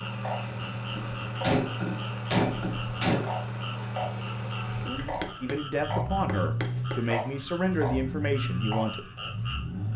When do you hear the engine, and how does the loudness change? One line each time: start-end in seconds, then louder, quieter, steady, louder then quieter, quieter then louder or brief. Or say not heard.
0.0-9.9 steady.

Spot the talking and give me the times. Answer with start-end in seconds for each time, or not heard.
5.4-9.1.